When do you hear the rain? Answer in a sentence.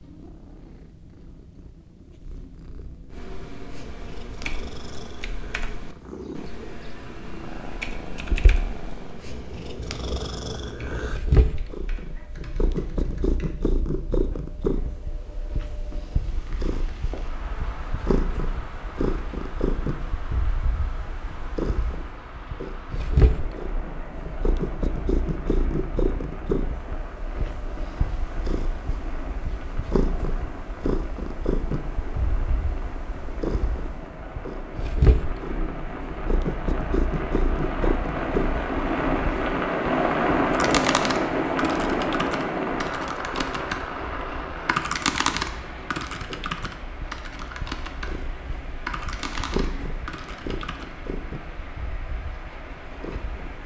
The rain can be heard from 16.2 to 53.6 s.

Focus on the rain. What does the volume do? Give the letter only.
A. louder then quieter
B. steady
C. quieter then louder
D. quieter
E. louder
A.